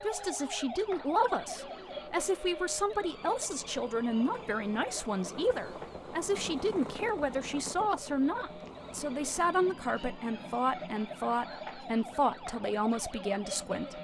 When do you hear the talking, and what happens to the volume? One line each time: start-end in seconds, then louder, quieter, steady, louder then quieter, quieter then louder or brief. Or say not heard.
0.0-13.9 steady.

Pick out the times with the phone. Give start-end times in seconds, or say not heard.
not heard.